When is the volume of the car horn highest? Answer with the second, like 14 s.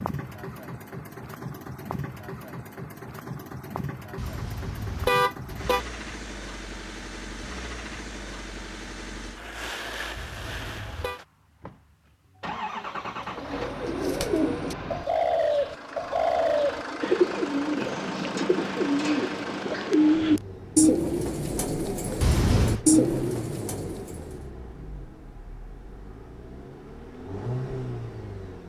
5 s.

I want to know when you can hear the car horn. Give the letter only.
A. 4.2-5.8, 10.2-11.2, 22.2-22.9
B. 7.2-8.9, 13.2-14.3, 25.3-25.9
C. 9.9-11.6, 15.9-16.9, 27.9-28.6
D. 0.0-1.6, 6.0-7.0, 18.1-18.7
A.